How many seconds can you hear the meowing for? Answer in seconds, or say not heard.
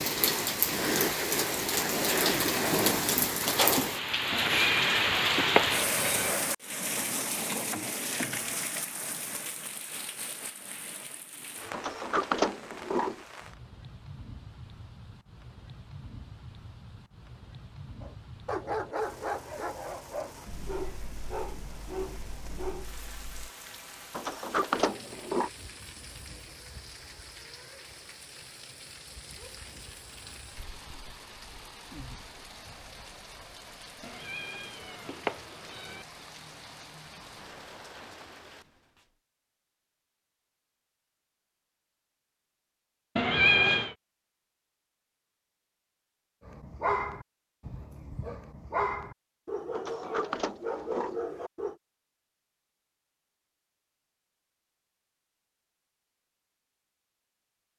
5 s.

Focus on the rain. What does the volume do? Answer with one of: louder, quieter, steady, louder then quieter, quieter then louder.
quieter.